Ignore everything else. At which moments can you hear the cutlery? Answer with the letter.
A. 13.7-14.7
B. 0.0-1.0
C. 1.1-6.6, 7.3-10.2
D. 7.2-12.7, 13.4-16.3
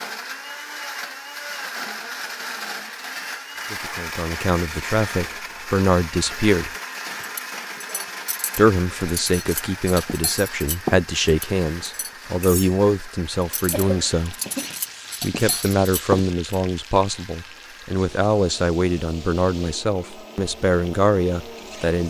D.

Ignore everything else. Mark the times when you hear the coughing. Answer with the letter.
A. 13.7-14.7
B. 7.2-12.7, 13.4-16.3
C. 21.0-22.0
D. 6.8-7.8
A.